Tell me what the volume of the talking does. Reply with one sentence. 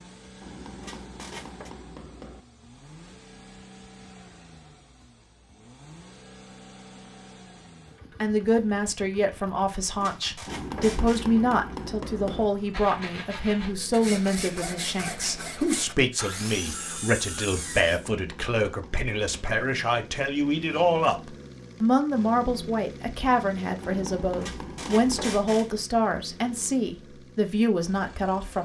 The volume of the talking stays about the same.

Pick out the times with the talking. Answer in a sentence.
The talking can be heard from 8.2 to 28.6 s.